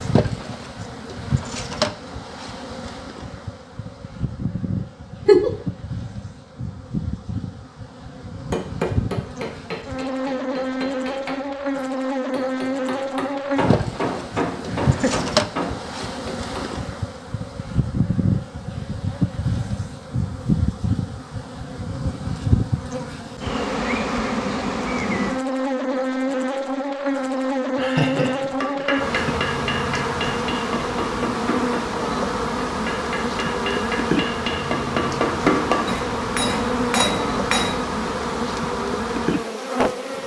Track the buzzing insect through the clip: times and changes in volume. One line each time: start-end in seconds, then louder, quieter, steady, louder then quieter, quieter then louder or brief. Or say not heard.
0.0-40.2 louder.